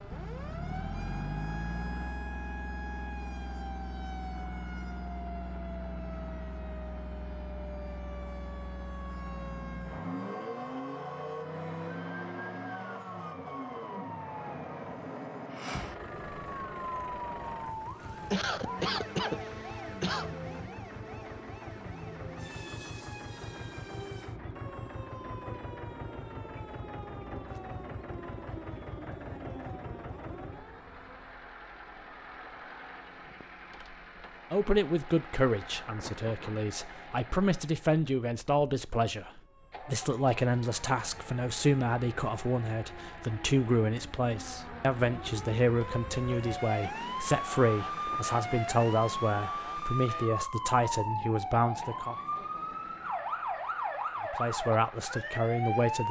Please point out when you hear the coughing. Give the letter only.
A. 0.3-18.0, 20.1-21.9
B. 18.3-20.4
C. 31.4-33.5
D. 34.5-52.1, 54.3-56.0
B.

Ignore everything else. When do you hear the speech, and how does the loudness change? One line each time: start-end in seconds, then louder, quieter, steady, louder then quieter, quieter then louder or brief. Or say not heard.
34.5-52.1 steady
54.3-56.0 brief.